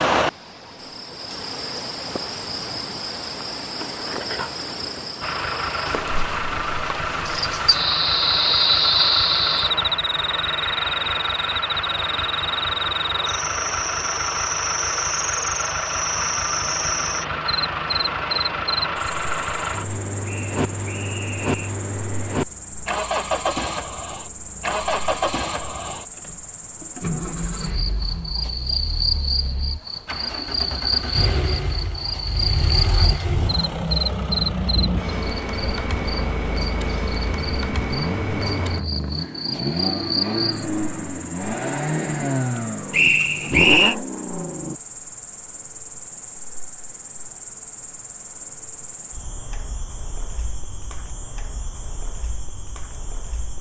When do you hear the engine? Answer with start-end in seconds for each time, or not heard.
5.2-44.8.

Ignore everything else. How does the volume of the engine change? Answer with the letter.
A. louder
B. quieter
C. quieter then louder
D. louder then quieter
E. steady
E.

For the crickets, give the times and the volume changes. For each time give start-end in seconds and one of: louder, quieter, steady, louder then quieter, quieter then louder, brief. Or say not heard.
0.0-53.5 quieter.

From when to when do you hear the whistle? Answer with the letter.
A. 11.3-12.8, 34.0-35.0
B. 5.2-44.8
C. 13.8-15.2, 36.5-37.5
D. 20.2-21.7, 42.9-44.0
D.